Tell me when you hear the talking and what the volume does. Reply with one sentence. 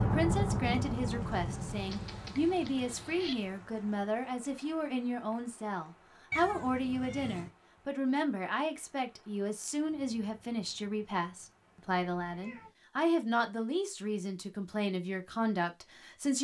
The talking can be heard from 0.0 to 16.3 s, at a steady volume.